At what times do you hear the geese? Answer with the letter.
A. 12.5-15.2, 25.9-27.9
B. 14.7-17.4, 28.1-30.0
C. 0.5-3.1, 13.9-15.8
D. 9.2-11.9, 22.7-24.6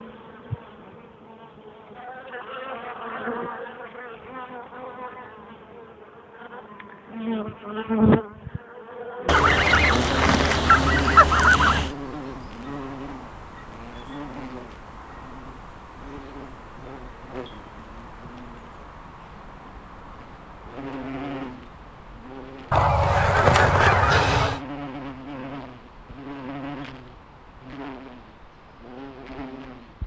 D.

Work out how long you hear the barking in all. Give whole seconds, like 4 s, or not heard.
not heard.